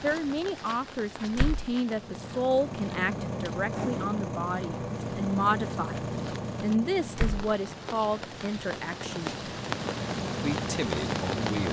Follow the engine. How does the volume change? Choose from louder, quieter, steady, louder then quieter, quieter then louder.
quieter then louder.